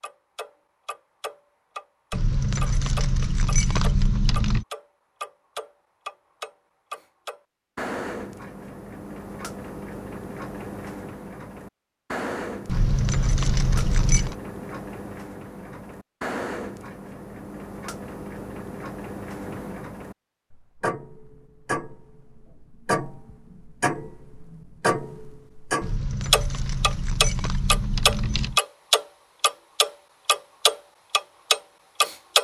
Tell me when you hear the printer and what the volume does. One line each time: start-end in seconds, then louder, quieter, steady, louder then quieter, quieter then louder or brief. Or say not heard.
not heard.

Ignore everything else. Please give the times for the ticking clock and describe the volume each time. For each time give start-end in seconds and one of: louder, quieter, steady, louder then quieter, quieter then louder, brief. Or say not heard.
0.0-32.4 louder.